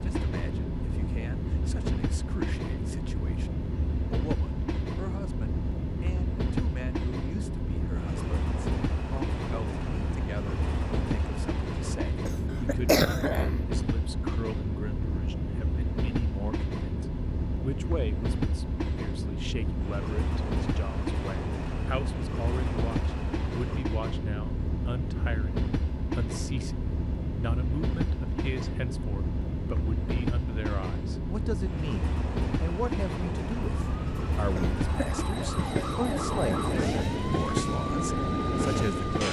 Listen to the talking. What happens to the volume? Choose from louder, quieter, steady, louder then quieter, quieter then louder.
louder.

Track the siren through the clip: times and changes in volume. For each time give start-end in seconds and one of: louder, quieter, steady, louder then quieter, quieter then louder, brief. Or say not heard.
33.5-39.1 louder.